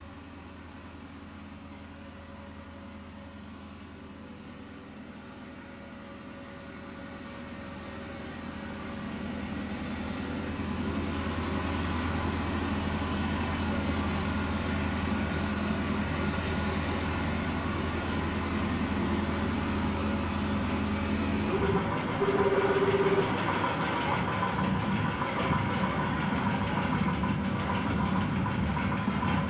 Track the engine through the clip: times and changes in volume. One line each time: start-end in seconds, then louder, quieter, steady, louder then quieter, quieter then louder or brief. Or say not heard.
0.0-29.4 louder.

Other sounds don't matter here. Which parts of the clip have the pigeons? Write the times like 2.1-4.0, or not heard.
not heard.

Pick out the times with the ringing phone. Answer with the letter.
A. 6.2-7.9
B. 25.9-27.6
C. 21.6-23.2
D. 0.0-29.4
C.